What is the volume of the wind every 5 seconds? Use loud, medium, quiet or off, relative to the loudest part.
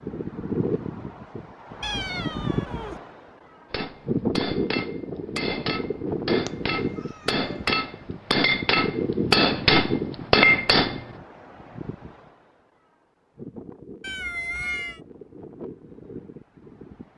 loud, loud, medium, quiet.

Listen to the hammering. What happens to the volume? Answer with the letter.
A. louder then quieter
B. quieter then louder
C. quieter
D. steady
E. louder
E.